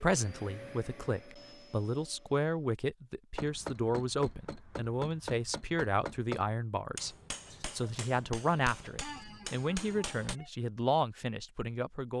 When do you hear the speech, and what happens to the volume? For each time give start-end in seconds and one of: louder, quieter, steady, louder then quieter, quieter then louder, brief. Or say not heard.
0.0-12.1 steady.